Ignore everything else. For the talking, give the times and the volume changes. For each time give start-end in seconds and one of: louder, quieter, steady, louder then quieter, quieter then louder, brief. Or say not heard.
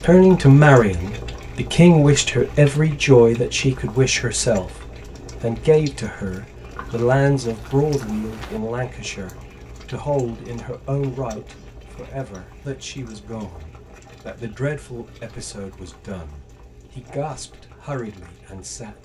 0.0-4.7 quieter
5.4-18.9 quieter.